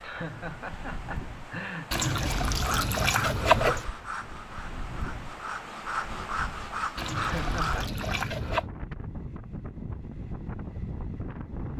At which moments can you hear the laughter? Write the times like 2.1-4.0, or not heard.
0.0-2.4, 7.2-7.9.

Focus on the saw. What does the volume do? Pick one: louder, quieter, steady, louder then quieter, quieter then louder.
quieter then louder.